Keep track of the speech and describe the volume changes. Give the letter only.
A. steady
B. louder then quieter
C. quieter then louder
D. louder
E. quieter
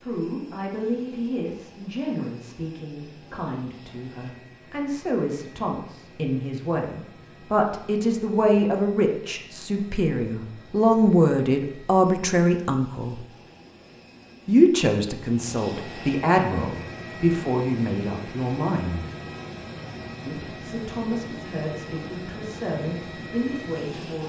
B.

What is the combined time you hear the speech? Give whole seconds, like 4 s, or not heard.
22 s.